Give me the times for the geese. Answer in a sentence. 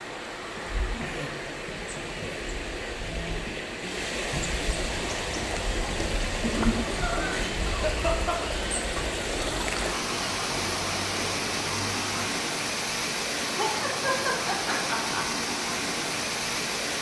The geese can be heard from 4.8 to 12.3 s.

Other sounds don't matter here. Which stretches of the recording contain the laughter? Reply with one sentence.
The laughter can be heard from 0.8 to 3.4 s, from 6.4 to 8.4 s and from 13.4 to 15.2 s.